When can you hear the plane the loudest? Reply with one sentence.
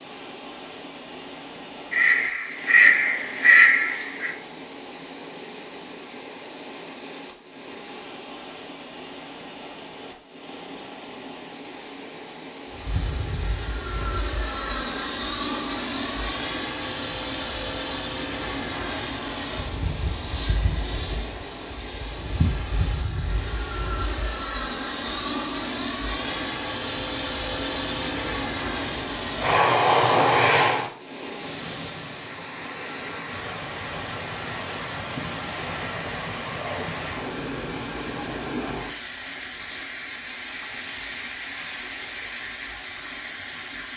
The loudest moment of the plane is at 30 seconds.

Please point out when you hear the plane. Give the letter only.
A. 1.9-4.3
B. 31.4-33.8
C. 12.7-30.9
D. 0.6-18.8
C.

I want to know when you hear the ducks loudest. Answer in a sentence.
The loudest moment of the ducks is at 4 seconds.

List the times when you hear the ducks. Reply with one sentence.
The ducks can be heard from 1.9 to 4.3 s.